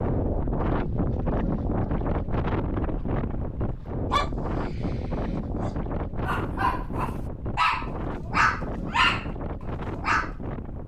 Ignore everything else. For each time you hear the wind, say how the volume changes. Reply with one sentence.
You can hear the wind from 0.0 to 10.8 s, getting quieter.